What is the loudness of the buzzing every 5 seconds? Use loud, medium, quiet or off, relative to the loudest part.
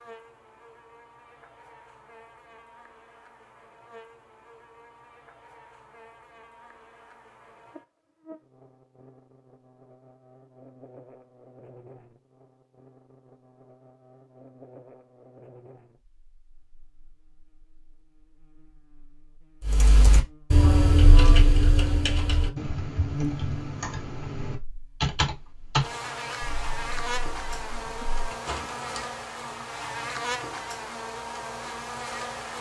quiet, quiet, quiet, quiet, loud, loud, loud.